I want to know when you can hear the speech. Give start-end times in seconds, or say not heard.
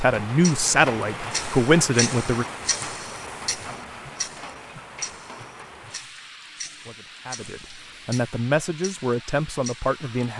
0.0-2.5, 6.8-10.3.